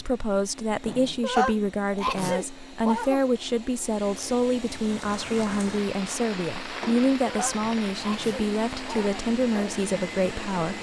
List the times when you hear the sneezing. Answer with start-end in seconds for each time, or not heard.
1.2-3.2, 7.2-9.1.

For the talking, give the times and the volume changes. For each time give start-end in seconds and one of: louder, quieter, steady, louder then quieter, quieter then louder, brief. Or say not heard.
0.0-10.7 steady.